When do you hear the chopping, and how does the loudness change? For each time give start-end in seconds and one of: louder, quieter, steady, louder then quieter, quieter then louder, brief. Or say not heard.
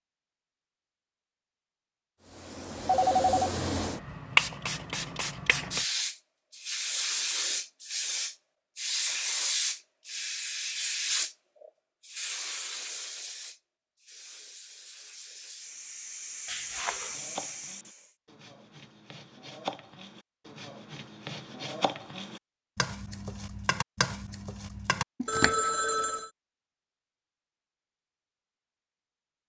17.1-25.7 louder.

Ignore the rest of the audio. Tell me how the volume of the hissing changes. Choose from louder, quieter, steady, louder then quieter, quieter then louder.
quieter.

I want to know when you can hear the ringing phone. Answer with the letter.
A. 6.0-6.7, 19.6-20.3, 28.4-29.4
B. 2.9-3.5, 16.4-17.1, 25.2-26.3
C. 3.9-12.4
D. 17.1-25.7
B.